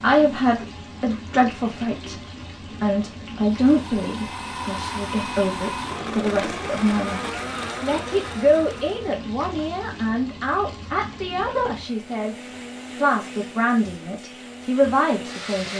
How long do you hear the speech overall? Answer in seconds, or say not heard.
15 s.